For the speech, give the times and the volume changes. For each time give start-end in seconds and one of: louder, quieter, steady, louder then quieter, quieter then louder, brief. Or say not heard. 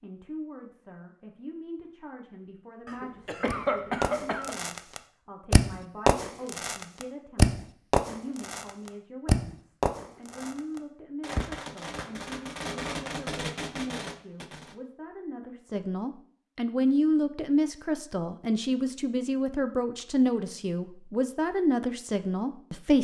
0.0-22.9 louder.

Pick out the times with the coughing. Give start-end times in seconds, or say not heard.
2.9-4.5.